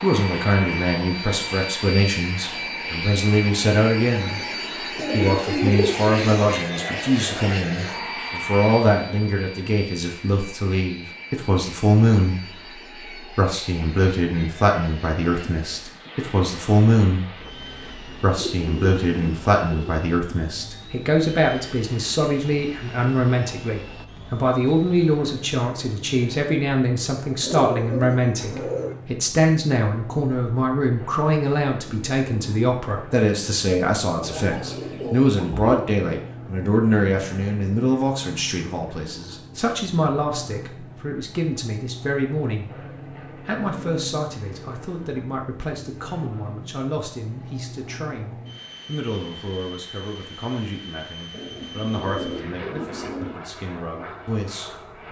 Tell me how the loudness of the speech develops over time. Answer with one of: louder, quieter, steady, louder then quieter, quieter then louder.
quieter.